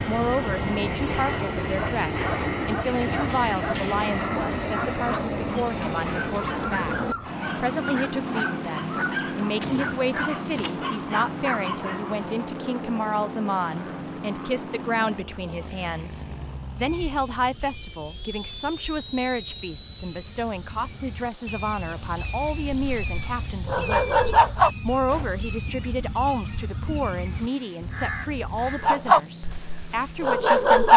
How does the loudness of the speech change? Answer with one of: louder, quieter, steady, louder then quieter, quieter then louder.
steady.